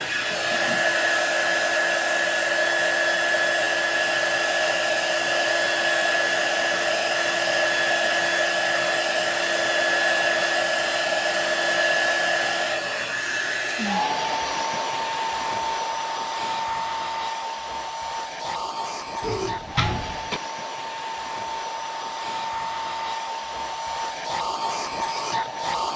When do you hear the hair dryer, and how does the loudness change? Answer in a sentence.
You can hear the hair dryer from 0.0 to 25.9 s, getting quieter.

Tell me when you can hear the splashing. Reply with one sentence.
You can't hear the splashing here.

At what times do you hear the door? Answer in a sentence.
You can hear the door from 19.2 to 20.4 s.